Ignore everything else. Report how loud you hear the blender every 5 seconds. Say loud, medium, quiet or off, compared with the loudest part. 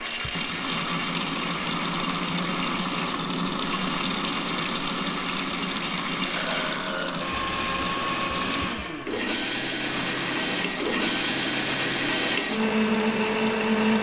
medium, medium, loud.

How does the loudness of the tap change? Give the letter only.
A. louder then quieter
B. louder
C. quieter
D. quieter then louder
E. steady
C.